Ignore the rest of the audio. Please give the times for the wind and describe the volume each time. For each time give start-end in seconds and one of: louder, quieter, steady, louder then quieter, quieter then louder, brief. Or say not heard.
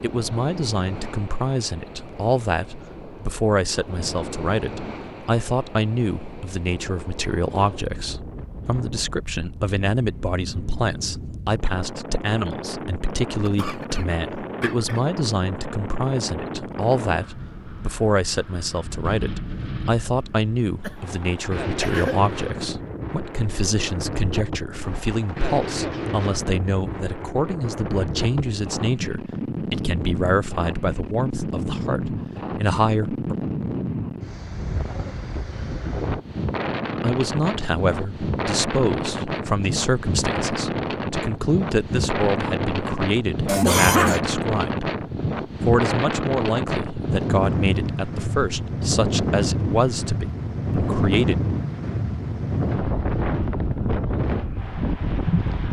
0.0-55.6 louder.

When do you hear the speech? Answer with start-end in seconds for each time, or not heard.
0.0-33.4, 37.0-44.9, 45.6-51.4.